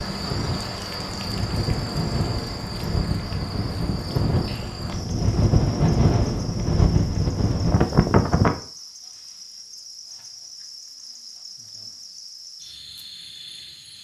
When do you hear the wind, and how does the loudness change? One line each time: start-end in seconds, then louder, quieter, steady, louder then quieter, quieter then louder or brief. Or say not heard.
0.0-8.6 louder.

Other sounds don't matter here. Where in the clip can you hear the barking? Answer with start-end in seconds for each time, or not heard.
not heard.